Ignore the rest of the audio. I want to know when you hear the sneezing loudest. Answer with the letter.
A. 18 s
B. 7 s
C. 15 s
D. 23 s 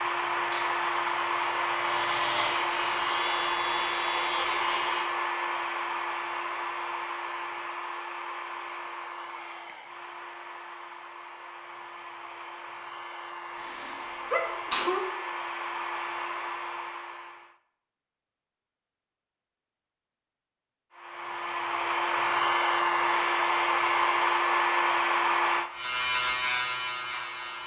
C.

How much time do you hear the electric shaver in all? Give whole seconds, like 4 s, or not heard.
7 s.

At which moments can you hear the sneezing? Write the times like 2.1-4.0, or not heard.
13.6-15.1.